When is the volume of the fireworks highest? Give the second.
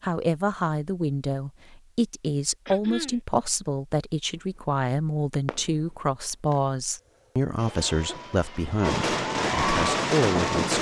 10 s.